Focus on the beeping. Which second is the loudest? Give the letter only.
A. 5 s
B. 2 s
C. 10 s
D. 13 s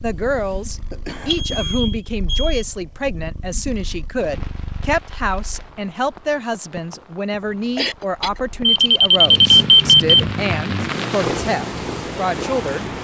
C.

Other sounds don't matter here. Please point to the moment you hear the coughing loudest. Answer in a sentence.
The loudest moment of the coughing is at 8 seconds.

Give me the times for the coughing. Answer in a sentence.
You can hear the coughing from 0.2 to 1.9 s and from 7.8 to 8.4 s.